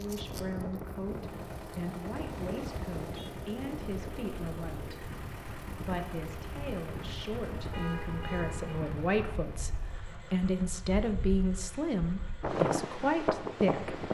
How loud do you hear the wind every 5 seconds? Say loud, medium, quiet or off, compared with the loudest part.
medium, medium, loud.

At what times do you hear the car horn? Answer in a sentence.
The car horn can be heard from 2.2 to 3.4 s and from 7.5 to 8.8 s.